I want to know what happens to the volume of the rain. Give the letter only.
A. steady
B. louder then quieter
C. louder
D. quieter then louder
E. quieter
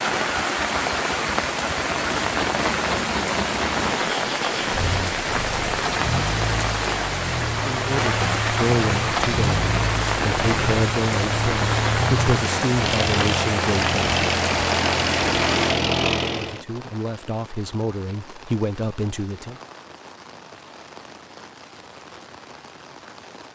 E.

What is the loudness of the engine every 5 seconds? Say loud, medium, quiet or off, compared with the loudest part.
medium, medium, loud, loud, off.